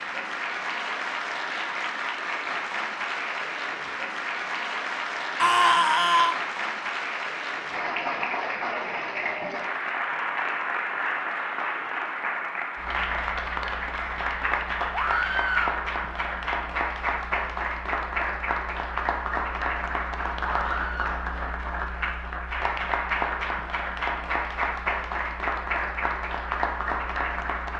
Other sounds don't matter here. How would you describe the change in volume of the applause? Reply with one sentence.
The volume of the applause stays about the same.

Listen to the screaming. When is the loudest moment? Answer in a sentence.
The loudest moment of the screaming is at 6 seconds.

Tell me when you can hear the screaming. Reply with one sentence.
You can hear the screaming from 5.4 to 6.3 s, from 14.9 to 15.8 s and from 20.4 to 21.2 s.